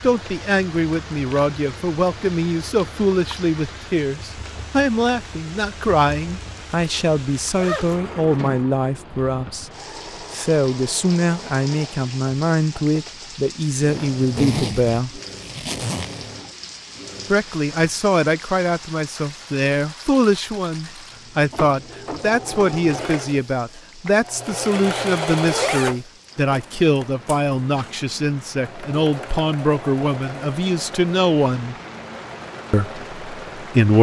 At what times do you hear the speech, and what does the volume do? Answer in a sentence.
The speech can be heard from 0.0 to 9.7 s, at a steady volume; from 10.3 to 15.2 s, at a steady volume; from 17.3 to 31.8 s, at a steady volume; and briefly from 32.7 to 33.9 s.